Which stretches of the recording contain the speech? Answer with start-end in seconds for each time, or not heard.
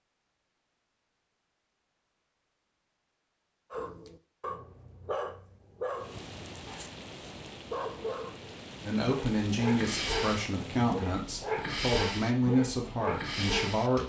8.8-14.0.